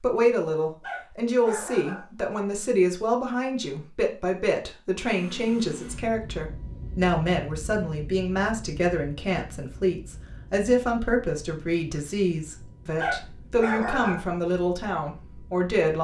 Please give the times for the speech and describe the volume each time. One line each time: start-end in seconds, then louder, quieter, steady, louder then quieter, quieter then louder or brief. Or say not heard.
0.0-16.0 steady.